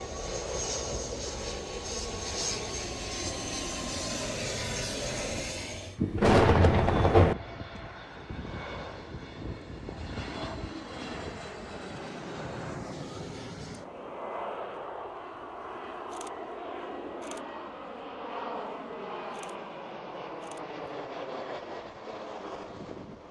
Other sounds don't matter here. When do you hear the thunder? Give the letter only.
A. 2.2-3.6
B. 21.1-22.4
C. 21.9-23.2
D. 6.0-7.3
D.